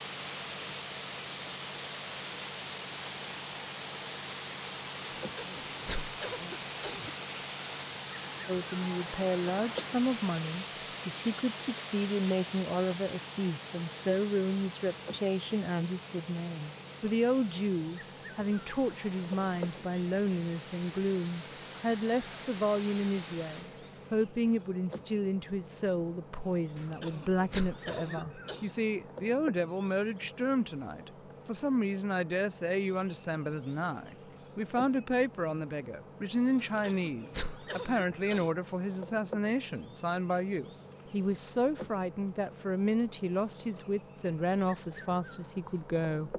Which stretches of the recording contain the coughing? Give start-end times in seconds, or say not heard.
5.2-7.1, 26.8-28.7, 36.5-38.5.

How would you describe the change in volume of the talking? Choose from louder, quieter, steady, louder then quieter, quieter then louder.
steady.